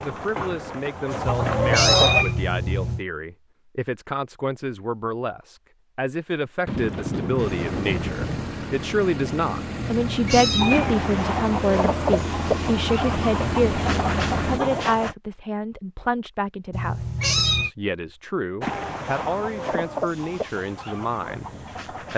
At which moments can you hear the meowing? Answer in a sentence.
The meowing can be heard from 1.2 to 3.0 s, from 9.8 to 11.0 s and from 16.7 to 17.7 s.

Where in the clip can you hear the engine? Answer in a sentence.
The engine can be heard from 7.3 to 14.6 s.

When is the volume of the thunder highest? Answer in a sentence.
The loudest moment of the thunder is at 7 seconds.